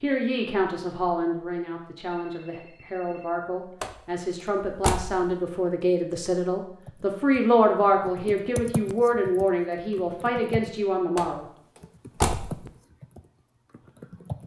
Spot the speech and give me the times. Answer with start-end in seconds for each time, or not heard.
0.0-11.4.